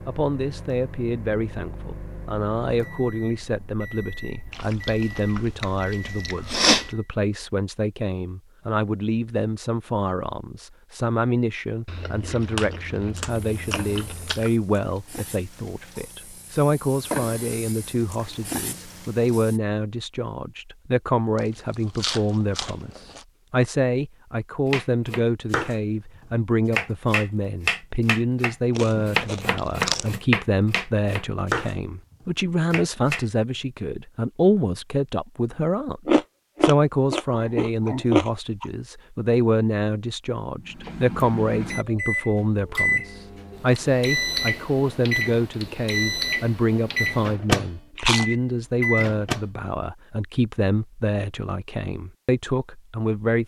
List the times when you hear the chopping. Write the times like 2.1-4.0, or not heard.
24.6-33.2.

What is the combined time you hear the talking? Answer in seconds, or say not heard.
53 s.